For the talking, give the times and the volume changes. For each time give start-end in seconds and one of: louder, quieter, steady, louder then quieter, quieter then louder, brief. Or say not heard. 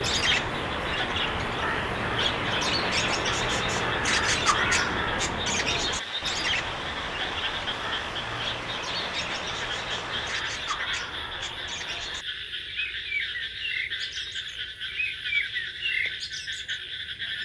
not heard.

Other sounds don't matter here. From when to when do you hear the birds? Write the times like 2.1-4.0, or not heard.
0.0-17.4.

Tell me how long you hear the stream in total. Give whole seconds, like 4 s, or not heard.
10 s.